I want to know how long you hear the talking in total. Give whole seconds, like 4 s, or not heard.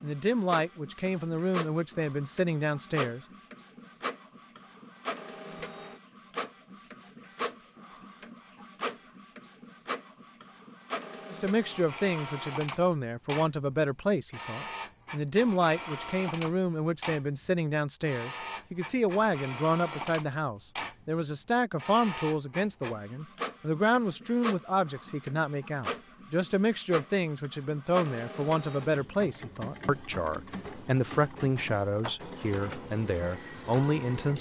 26 s.